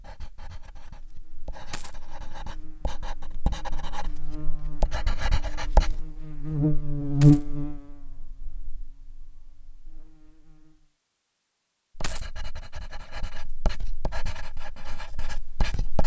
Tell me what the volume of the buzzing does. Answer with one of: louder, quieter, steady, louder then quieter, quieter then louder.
louder then quieter.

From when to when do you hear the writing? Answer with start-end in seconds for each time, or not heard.
0.0-6.0, 11.9-16.0.